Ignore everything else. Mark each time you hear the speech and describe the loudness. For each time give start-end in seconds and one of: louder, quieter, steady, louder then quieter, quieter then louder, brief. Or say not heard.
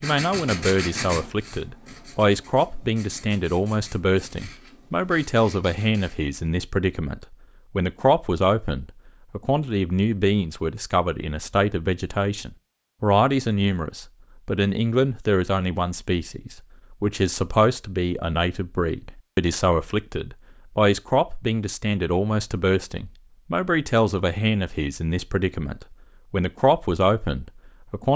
0.0-28.1 steady.